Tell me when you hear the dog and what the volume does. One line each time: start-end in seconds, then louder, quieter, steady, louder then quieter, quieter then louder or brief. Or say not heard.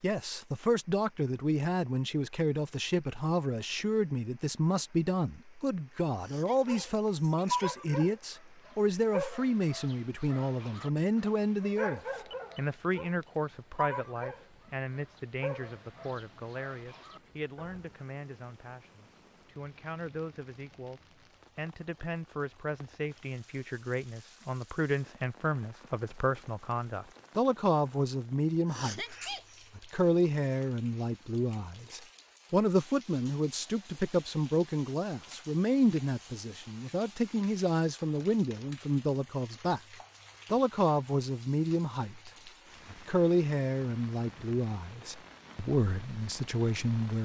6.5-17.9 quieter.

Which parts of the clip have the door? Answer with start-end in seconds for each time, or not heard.
not heard.